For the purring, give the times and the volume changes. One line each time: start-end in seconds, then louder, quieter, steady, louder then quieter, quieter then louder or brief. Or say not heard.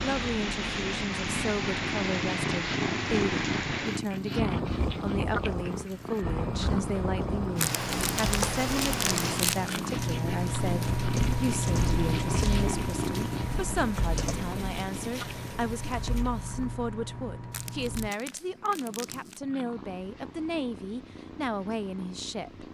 0.0-22.6 quieter.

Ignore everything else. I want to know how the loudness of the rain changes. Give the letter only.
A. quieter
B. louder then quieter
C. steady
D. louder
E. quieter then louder
A.